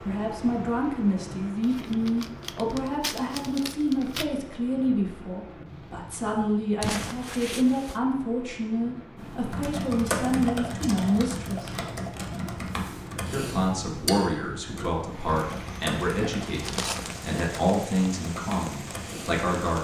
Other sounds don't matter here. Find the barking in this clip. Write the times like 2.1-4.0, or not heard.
not heard.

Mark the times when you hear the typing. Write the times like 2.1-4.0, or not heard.
9.2-19.4.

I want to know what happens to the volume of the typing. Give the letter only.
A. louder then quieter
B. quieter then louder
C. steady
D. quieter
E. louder
D.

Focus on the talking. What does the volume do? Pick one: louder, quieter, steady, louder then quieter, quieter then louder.
steady.